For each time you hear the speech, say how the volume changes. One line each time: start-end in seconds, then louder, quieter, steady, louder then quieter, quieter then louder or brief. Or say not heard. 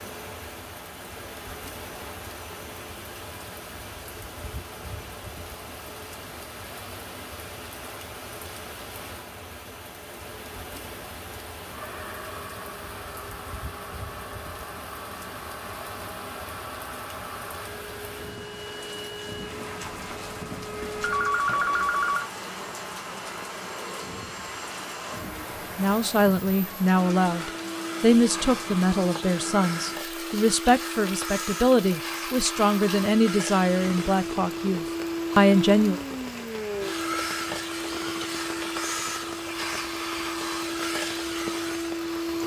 25.8-36.0 steady.